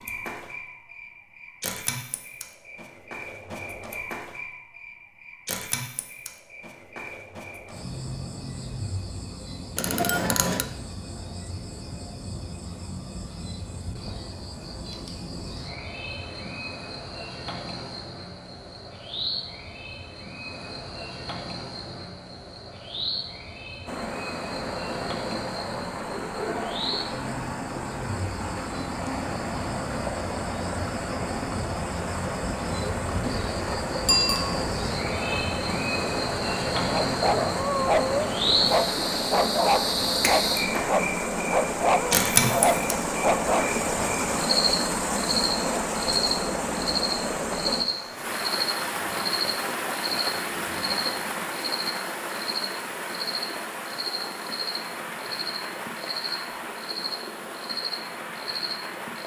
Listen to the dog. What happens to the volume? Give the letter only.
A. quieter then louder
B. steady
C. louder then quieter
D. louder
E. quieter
B.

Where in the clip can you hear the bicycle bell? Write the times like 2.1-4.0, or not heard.
9.8-10.7, 34.0-34.6.